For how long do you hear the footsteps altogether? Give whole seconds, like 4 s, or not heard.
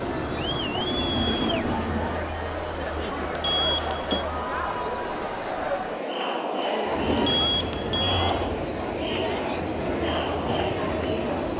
not heard.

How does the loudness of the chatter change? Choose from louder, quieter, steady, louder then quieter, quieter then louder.
steady.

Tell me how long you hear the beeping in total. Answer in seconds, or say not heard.
2 s.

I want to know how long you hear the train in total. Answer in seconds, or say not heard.
7 s.